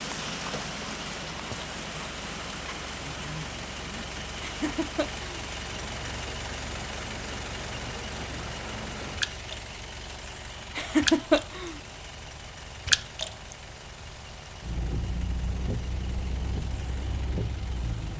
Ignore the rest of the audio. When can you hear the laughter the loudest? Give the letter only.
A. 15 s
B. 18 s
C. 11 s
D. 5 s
C.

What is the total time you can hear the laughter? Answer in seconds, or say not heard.
2 s.